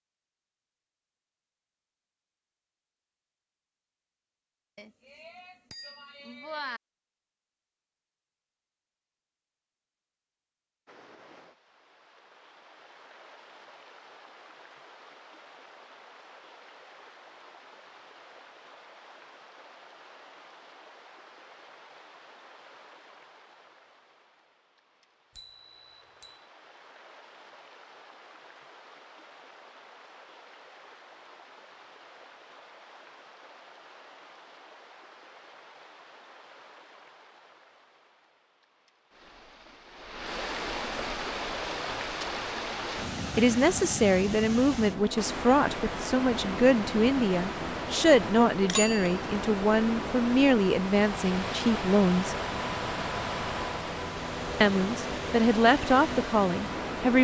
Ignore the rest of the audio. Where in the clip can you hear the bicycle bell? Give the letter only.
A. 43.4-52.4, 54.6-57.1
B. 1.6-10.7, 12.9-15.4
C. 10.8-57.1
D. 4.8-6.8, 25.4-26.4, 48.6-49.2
D.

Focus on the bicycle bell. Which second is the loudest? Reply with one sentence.
The volume of the bicycle bell peaks at 49 seconds.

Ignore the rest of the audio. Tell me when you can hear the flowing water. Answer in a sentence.
The flowing water can be heard from 10.8 to 57.1 s.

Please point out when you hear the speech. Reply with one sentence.
You can hear the speech from 43.4 to 52.4 s and from 54.6 to 57.1 s.